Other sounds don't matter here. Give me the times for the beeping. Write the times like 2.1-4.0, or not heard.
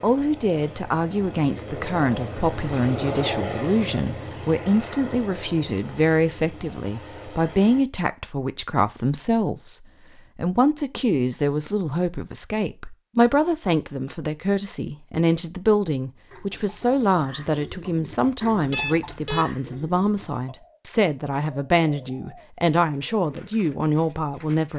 18.7-19.4.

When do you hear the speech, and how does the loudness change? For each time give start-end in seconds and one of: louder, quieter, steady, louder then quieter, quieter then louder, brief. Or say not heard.
0.0-24.7 steady.